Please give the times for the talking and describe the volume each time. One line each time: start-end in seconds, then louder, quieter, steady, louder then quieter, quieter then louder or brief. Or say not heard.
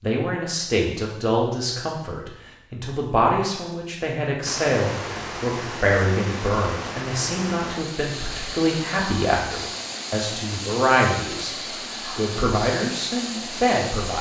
0.0-14.1 steady.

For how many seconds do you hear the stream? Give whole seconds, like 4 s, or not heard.
10 s.